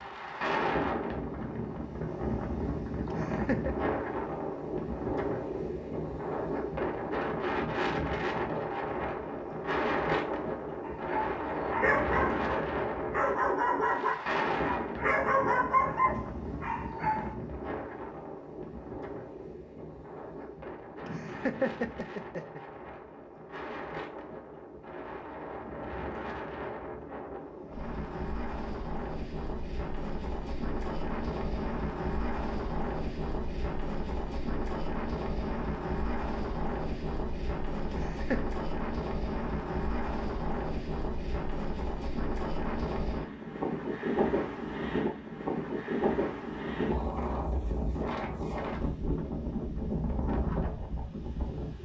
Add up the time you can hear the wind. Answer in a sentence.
You can hear the wind for 52 seconds altogether.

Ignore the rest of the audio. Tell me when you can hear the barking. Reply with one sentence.
The barking can be heard from 10.8 to 17.4 s.